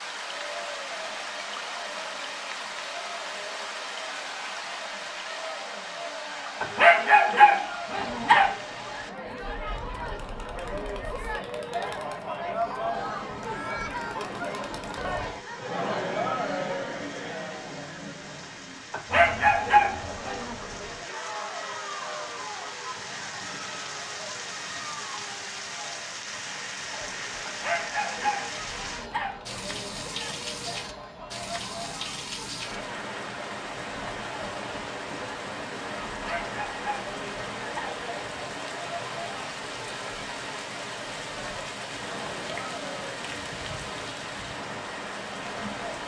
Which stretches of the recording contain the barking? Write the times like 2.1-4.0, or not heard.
6.6-8.6, 18.9-20.6, 27.4-29.4, 36.1-38.0.